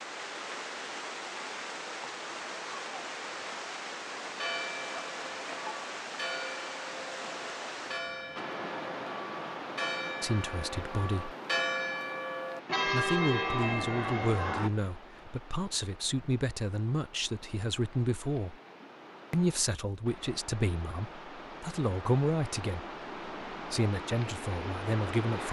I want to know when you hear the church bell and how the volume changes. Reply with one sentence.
The church bell can be heard from 4.3 to 14.7 s, getting louder.